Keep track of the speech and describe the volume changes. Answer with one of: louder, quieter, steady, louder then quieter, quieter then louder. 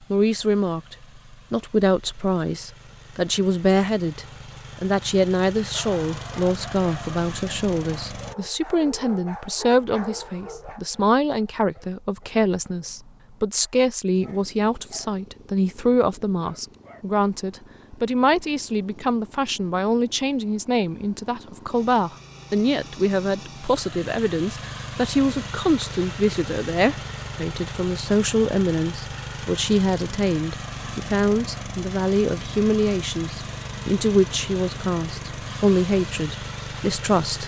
steady.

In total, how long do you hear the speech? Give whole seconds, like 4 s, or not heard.
37 s.